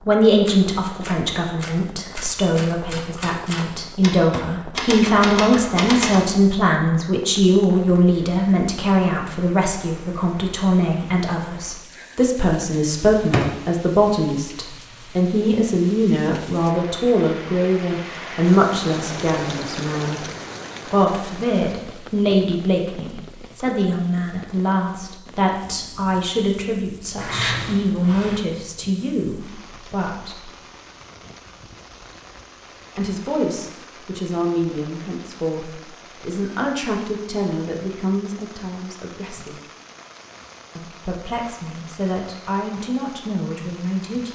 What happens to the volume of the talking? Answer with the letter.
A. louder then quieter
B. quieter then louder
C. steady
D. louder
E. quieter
E.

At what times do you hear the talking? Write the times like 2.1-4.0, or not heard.
0.1-20.2, 20.9-30.5, 33.0-39.5, 40.8-44.3.